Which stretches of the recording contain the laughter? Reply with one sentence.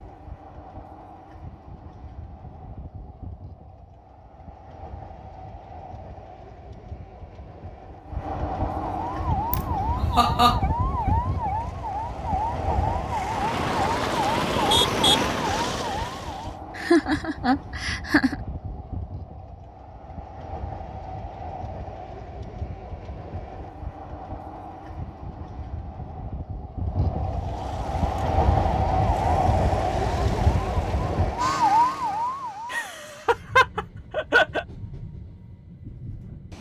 You can hear the laughter from 9.5 to 10.6 s, from 16.8 to 18.4 s and from 32.7 to 34.6 s.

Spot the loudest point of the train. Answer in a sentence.
The loudest moment of the train is at 29 seconds.